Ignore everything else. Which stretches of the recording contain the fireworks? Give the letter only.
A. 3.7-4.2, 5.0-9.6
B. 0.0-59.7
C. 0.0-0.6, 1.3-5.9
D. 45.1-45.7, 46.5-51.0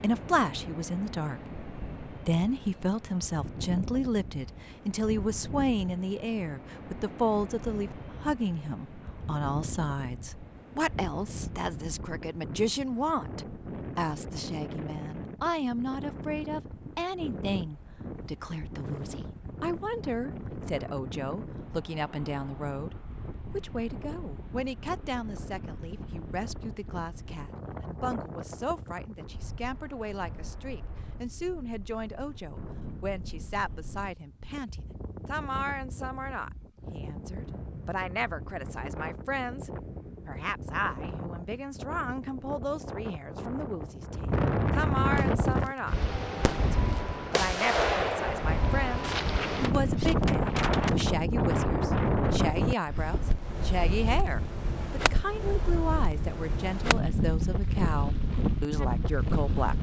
D.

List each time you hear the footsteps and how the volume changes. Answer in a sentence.
The footsteps can't be heard in this clip.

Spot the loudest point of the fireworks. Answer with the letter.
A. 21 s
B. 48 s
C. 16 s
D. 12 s
B.